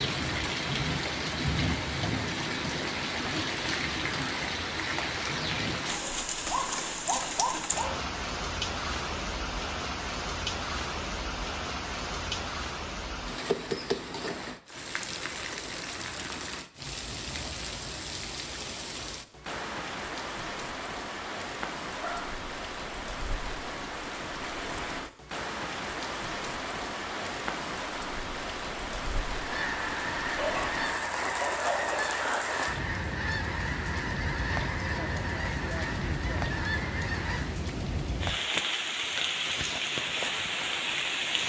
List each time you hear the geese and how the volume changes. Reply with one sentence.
You can hear the geese from 29.4 to 37.6 s, at a steady volume.